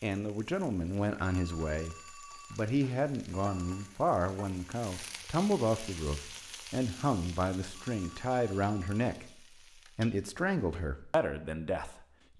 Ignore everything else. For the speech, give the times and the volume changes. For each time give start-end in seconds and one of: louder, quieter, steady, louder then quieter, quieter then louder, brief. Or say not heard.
0.0-9.2 steady
9.9-12.3 brief.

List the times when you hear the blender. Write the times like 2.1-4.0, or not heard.
not heard.